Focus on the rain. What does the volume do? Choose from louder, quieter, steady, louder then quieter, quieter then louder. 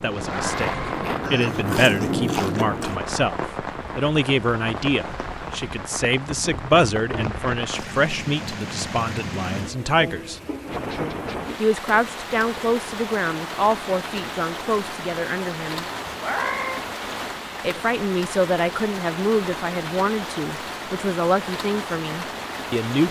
steady.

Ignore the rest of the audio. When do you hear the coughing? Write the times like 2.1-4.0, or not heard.
not heard.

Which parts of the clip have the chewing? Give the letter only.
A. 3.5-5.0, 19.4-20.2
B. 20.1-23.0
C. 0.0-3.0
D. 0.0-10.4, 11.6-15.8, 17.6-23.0
C.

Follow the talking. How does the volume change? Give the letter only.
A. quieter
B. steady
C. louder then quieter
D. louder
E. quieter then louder
B.